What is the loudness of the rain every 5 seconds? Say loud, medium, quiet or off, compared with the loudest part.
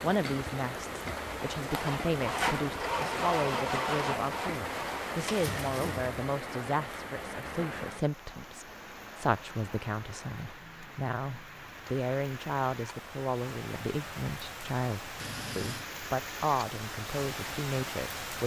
loud, loud, medium, loud.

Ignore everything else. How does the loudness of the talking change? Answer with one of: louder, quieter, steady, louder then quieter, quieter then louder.
steady.